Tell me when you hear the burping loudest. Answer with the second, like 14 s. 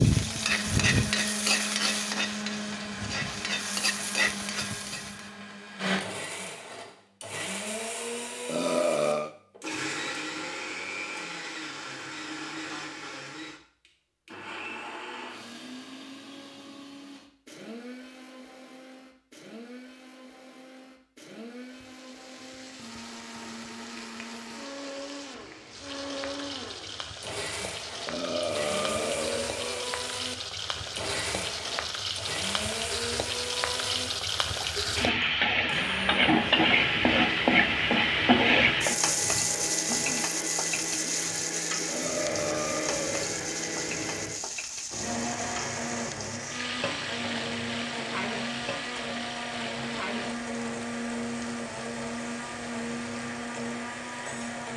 9 s.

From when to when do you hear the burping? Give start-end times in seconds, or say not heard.
8.4-9.3, 28.1-29.9, 41.9-43.3.